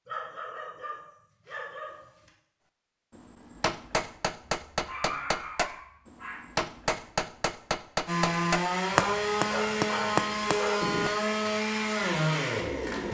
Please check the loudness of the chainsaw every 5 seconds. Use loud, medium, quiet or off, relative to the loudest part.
off, loud, loud.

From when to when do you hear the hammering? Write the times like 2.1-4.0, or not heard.
3.1-11.2.